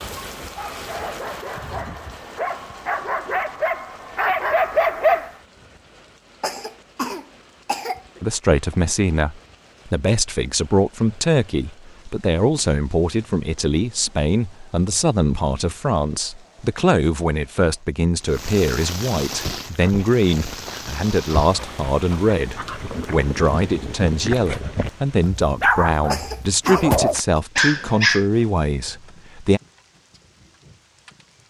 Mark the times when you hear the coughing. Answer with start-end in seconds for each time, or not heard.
6.4-8.2, 26.1-27.4.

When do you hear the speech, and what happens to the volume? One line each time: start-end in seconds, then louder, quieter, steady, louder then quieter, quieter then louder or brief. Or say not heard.
8.2-29.6 steady.